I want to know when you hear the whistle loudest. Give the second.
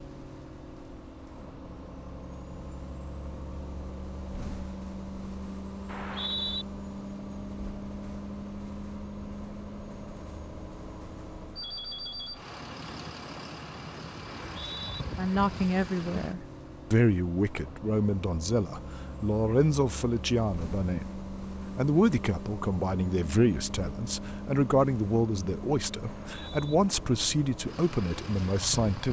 6 s.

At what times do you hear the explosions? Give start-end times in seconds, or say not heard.
not heard.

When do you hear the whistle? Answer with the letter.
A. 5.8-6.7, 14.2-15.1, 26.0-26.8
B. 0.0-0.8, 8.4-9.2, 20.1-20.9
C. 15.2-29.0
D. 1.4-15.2
A.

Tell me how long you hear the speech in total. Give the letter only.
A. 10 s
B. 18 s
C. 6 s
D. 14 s
D.